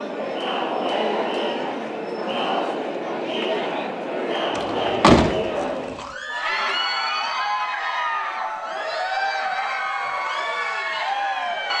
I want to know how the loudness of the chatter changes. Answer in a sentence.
The volume of the chatter stays about the same.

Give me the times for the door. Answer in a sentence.
You can hear the door from 4.5 to 6.1 s.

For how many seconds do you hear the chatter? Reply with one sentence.
The chatter can be heard for 12 seconds in total.